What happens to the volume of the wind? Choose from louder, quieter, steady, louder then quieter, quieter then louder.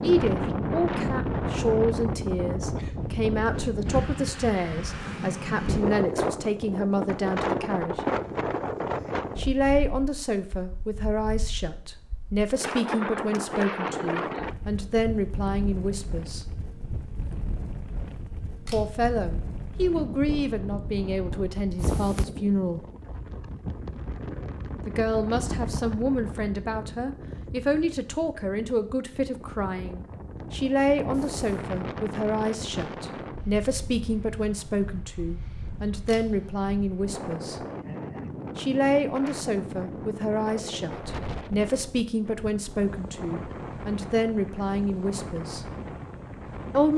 quieter.